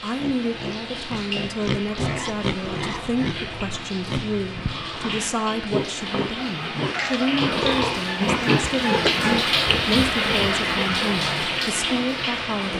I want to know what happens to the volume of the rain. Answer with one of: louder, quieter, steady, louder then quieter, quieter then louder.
louder.